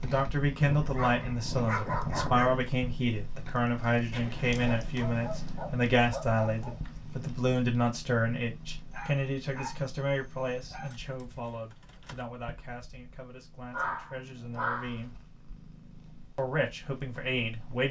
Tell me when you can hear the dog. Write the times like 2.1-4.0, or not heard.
0.6-2.5, 4.8-7.0, 8.9-10.9, 13.7-14.9.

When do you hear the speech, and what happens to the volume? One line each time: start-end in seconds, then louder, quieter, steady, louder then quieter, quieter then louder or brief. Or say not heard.
0.0-15.2 quieter
16.4-17.8 brief.